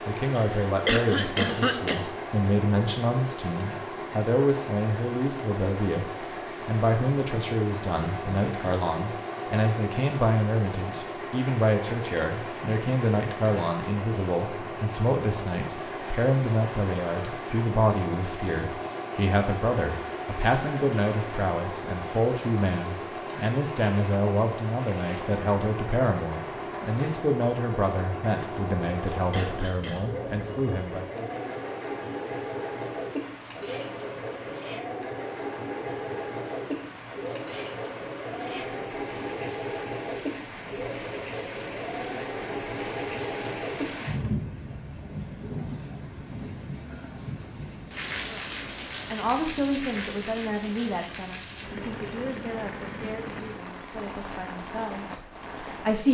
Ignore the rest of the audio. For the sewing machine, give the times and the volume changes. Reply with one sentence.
The sewing machine can be heard from 0.0 to 44.4 s, at a steady volume.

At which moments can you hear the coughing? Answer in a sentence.
You can hear the coughing from 0.3 to 2.1 s and from 28.8 to 30.1 s.